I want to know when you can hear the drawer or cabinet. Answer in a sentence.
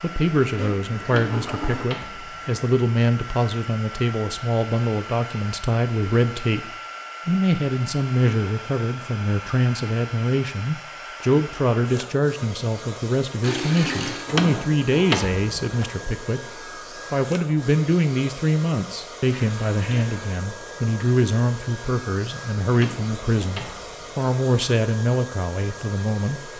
The drawer or cabinet can be heard from 1.1 to 2.6 s, from 14.2 to 15.8 s and from 22.7 to 24.3 s.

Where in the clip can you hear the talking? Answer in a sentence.
The talking can be heard from 0.0 to 26.5 s.